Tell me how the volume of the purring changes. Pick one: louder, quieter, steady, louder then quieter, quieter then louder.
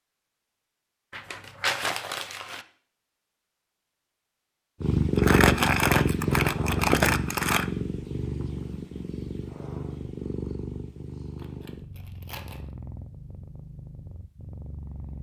quieter.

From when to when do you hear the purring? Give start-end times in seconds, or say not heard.
4.8-15.1.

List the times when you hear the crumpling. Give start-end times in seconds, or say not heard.
1.1-2.6, 5.2-7.7, 11.3-12.7.